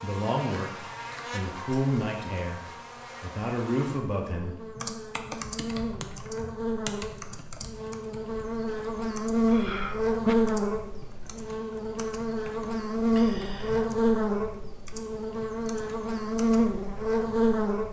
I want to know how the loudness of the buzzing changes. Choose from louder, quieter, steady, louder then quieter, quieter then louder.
louder.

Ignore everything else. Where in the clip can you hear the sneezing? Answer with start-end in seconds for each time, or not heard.
9.5-10.3.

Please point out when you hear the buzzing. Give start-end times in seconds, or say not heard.
0.0-17.8.